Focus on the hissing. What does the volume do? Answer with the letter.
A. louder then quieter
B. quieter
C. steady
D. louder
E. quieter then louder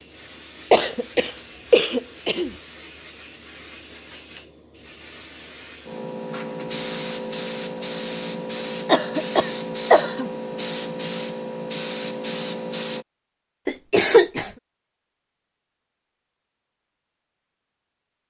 D.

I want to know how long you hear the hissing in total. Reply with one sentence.
You can hear the hissing for 13 seconds altogether.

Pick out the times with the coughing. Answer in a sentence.
The coughing can be heard from 0.7 to 2.5 s, from 8.8 to 10.3 s and from 13.7 to 14.5 s.